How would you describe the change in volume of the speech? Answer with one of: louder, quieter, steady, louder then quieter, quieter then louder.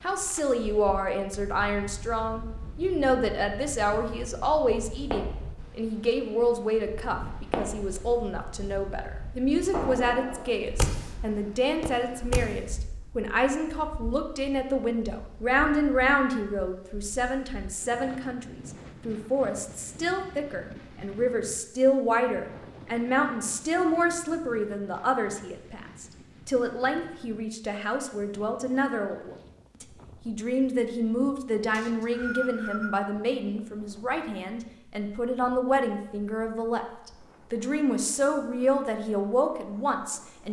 steady.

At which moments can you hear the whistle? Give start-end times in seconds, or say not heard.
31.7-32.9.